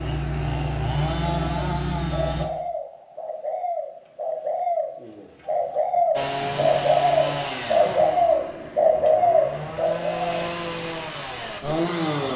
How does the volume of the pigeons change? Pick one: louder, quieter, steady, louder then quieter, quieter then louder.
louder.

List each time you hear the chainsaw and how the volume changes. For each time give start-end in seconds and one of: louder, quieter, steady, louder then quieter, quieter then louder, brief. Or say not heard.
0.0-2.5 brief
6.2-12.3 quieter then louder.